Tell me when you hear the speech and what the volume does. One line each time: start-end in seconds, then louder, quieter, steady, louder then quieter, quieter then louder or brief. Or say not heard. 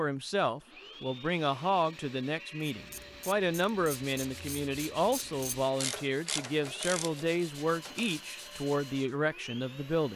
0.0-10.1 steady.